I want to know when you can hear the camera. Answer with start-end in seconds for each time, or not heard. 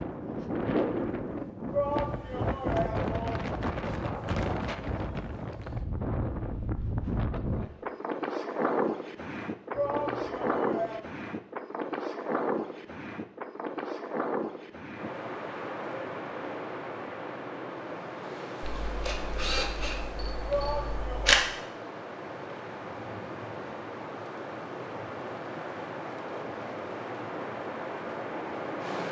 18.9-21.4.